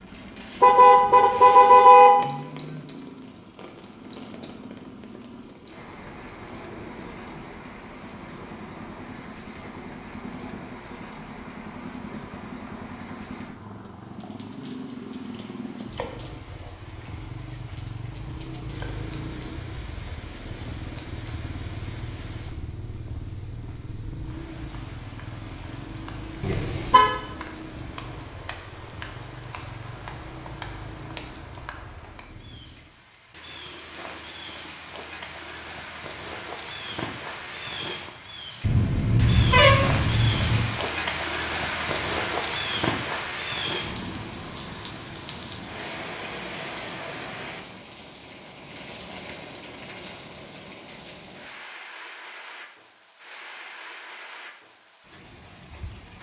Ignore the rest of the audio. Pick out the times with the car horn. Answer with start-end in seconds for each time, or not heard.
0.6-2.1, 26.4-27.1, 38.6-40.6.